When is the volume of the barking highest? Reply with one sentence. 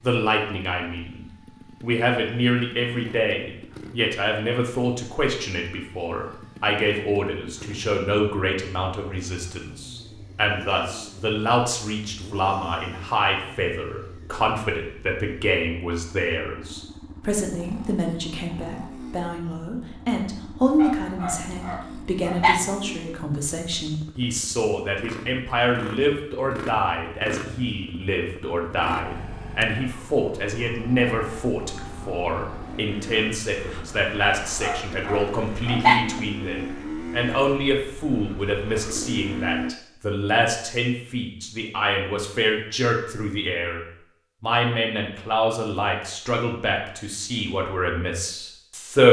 The loudest moment of the barking is at 36 seconds.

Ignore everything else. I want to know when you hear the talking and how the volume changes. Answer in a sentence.
The talking can be heard from 0.0 to 49.0 s, at a steady volume.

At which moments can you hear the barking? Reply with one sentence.
You can hear the barking from 20.8 to 22.6 s and from 34.4 to 36.1 s.